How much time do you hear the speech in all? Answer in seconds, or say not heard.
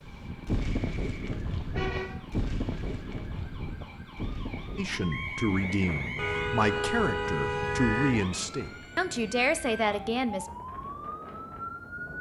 6 s.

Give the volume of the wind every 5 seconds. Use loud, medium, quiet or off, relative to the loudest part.
loud, medium, medium.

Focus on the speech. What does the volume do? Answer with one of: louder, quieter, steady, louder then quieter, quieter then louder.
steady.